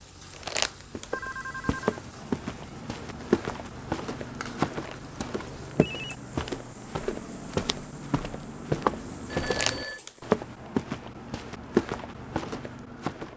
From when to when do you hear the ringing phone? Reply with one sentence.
You can hear the ringing phone from 1.1 to 2.0 s, from 5.7 to 6.2 s and from 9.3 to 10.0 s.